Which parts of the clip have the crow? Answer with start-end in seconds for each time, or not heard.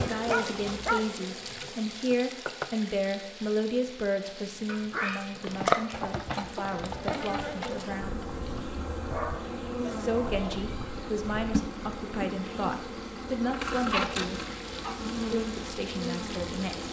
not heard.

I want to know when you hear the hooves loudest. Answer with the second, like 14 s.
6 s.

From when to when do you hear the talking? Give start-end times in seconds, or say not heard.
0.0-8.2, 9.9-14.4, 15.3-16.8.